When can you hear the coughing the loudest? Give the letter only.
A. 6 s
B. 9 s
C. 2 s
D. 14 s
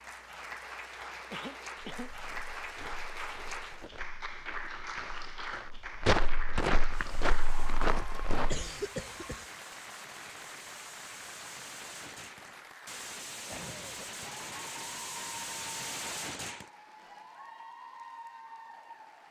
B.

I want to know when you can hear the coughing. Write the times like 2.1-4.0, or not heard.
1.3-2.1, 8.4-9.5, 13.4-14.3.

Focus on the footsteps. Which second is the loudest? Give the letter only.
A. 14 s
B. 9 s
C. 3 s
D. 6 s
D.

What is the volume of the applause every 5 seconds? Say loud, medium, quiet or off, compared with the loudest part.
loud, loud, medium, medium.